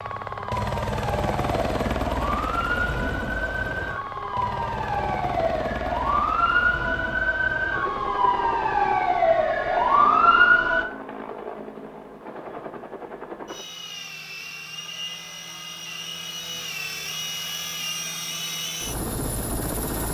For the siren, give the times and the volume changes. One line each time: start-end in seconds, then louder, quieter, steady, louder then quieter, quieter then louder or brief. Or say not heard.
0.0-10.8 louder.